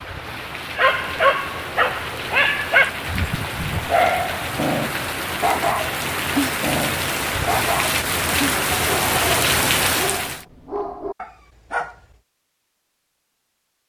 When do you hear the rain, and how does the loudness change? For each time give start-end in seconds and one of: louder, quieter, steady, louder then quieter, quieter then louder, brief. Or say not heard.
0.0-10.4 louder.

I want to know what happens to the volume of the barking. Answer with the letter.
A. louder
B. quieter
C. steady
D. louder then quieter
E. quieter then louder
B.